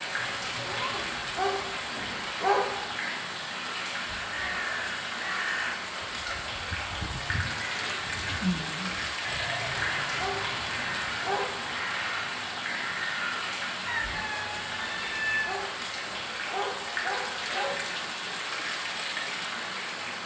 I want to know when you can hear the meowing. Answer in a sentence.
The meowing can be heard from 0.1 to 1.1 s and from 13.8 to 15.7 s.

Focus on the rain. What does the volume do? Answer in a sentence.
The loudness of the rain stays about the same.